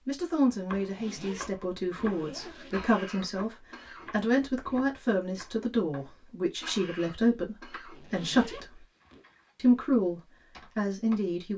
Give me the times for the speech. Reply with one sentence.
You can hear the speech from 0.1 to 8.8 s and from 9.6 to 11.5 s.